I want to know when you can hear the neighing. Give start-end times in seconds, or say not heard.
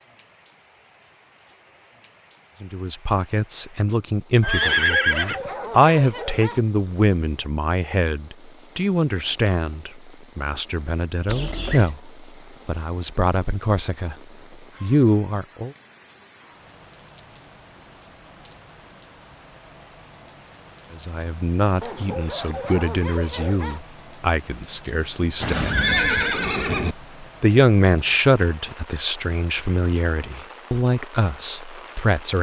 4.4-5.4, 11.2-11.9, 25.4-26.9.